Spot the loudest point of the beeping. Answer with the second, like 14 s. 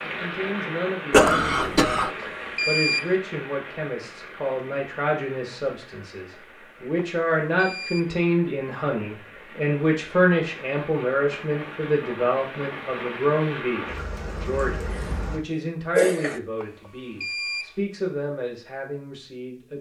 3 s.